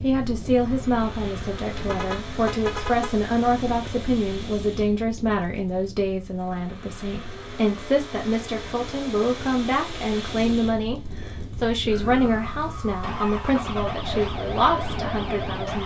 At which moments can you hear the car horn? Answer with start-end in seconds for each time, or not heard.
1.8-3.1.